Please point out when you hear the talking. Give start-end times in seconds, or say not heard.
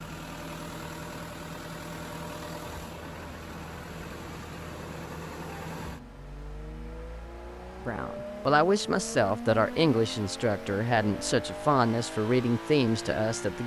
7.8-13.6.